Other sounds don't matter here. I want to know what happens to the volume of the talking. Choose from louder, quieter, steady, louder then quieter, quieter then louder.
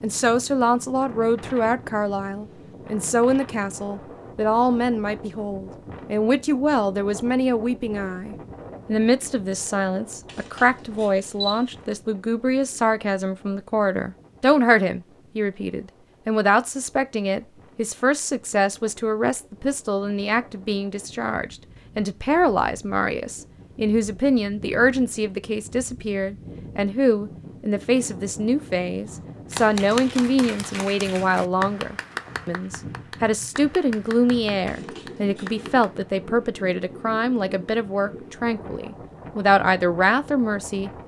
steady.